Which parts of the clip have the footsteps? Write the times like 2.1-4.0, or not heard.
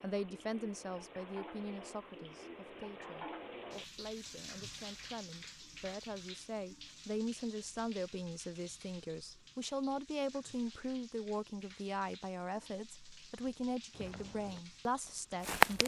13.3-14.6, 15.4-15.8.